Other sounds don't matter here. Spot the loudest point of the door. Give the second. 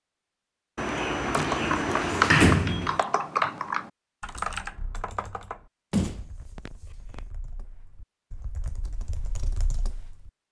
2 s.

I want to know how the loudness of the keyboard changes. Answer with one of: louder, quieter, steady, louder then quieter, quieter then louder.
quieter then louder.